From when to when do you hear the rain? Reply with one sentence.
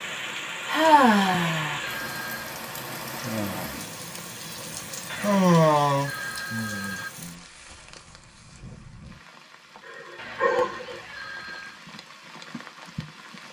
The rain can be heard from 0.0 to 13.4 s.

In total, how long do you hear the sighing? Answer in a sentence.
The sighing can be heard for 4 seconds in total.